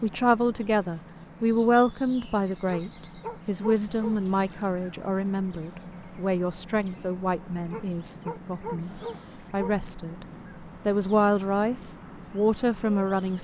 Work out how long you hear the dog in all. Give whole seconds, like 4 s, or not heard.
4 s.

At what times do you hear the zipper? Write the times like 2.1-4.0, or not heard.
not heard.